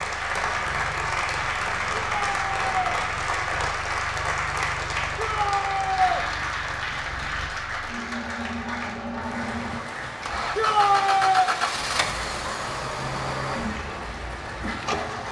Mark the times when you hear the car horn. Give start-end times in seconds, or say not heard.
not heard.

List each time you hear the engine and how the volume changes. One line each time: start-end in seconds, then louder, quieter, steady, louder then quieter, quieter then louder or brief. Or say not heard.
0.0-15.2 louder.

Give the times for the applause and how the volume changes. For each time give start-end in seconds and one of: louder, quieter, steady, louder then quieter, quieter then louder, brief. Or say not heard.
0.0-15.2 quieter.